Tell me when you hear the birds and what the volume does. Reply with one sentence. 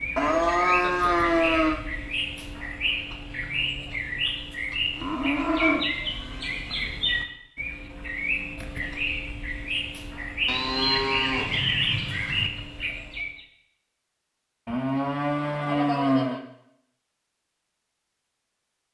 The birds can be heard from 0.0 to 13.4 s, at a steady volume.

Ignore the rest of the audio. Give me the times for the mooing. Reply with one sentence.
The mooing can be heard from 0.1 to 1.8 s, from 5.0 to 6.8 s, from 10.4 to 12.5 s and from 14.7 to 16.4 s.